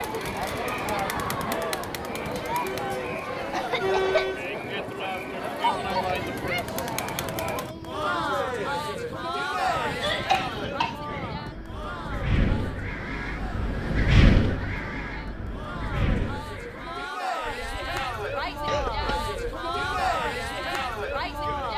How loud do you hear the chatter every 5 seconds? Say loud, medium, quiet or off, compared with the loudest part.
loud, loud, medium, loud, loud.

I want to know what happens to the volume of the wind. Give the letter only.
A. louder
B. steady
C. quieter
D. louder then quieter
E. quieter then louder
D.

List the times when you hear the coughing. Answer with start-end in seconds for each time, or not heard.
3.5-4.4, 10.0-11.3, 18.6-19.4.